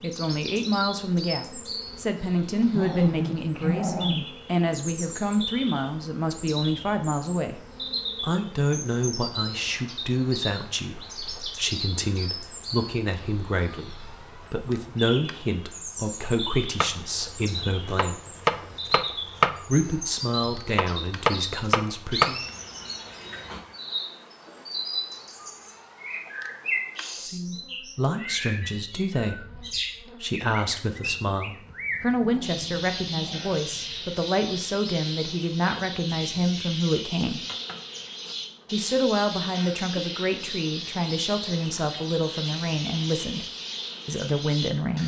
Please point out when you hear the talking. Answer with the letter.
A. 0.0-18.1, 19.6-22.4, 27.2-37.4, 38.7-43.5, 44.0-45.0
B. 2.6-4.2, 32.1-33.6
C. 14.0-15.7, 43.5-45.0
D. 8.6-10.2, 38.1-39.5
A.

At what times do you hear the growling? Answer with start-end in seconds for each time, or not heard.
2.6-4.2, 32.1-33.6.